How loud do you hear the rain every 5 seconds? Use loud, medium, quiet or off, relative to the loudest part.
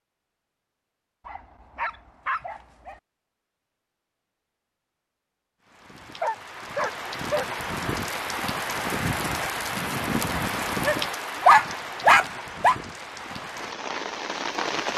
off, loud, loud.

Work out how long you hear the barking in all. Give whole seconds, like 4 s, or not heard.
5 s.